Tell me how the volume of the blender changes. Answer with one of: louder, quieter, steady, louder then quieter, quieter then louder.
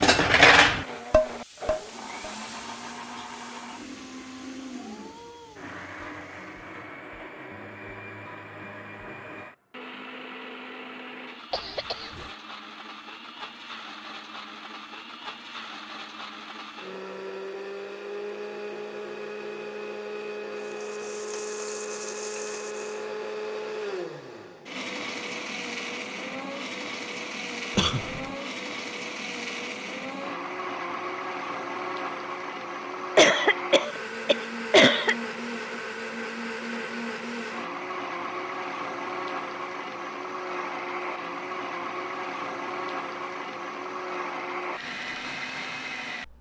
louder.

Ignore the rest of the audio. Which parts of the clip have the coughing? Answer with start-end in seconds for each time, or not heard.
11.5-12.3, 27.8-28.2, 33.1-35.1.